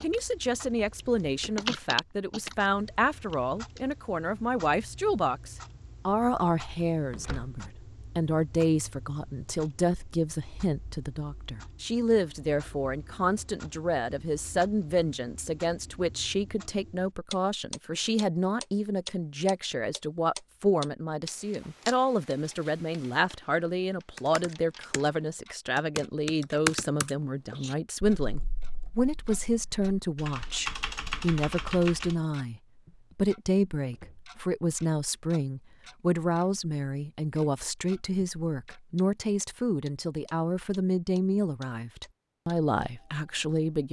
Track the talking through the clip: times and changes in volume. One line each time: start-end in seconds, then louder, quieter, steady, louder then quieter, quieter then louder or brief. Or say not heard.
0.0-43.8 steady.